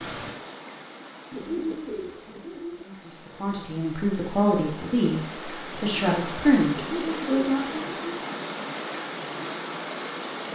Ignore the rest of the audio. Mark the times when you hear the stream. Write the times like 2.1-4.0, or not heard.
0.0-10.5.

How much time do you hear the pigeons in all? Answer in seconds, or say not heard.
3 s.